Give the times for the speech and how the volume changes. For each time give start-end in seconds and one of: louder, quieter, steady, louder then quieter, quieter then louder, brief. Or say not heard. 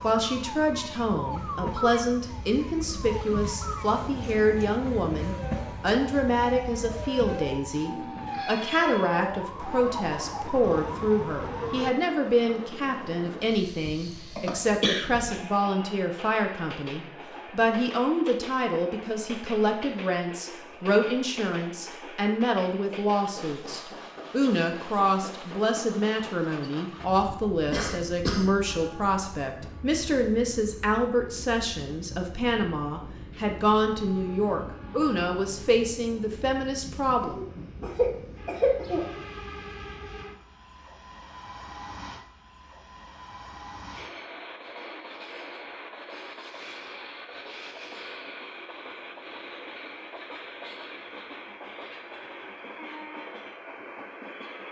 0.0-37.4 steady.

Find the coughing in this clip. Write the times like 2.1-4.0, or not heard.
14.1-15.1, 27.5-28.5, 37.2-39.0.